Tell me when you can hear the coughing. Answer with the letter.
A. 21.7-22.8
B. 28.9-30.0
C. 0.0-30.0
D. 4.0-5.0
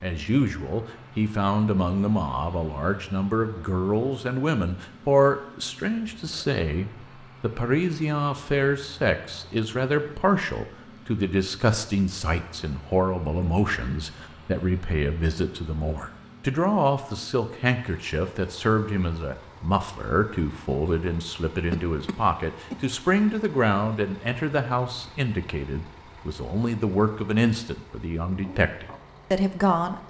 A.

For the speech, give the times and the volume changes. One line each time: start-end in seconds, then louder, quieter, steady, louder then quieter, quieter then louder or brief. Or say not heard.
0.0-30.0 steady.